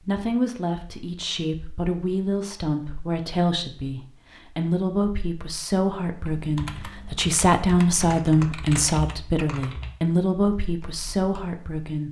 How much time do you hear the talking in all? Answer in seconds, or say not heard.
12 s.